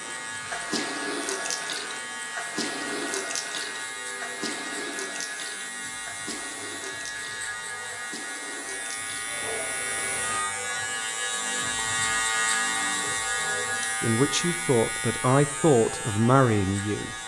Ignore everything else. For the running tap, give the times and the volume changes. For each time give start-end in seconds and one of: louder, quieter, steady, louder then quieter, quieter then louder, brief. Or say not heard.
0.0-10.4 quieter.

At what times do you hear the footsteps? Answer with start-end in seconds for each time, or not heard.
not heard.